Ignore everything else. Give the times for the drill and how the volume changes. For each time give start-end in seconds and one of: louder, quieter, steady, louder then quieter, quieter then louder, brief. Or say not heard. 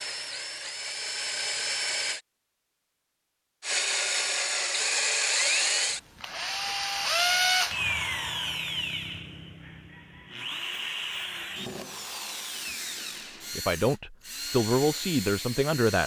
0.0-2.2 brief
3.6-16.0 quieter.